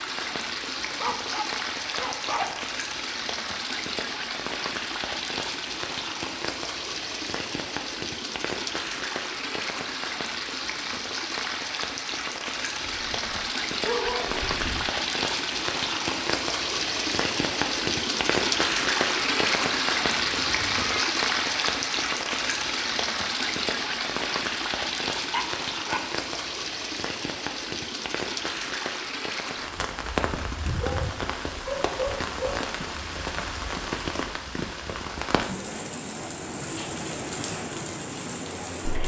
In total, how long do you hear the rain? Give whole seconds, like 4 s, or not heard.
39 s.